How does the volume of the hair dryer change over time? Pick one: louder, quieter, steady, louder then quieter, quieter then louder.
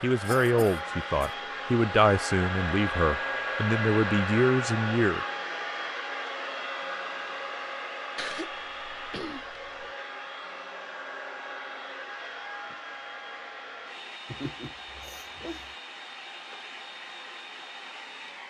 quieter.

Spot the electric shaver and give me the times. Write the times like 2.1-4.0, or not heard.
not heard.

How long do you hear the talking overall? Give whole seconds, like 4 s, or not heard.
5 s.